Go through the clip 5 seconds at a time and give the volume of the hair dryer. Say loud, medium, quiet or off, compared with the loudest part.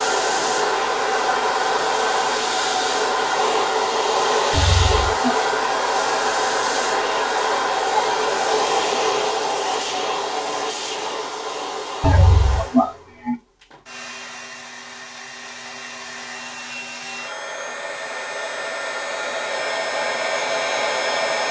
loud, loud, medium, medium, loud.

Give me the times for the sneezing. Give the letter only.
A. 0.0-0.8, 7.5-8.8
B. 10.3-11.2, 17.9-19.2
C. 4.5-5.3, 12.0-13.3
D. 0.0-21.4
C.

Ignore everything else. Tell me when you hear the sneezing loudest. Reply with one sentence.
The loudest moment of the sneezing is at 13 seconds.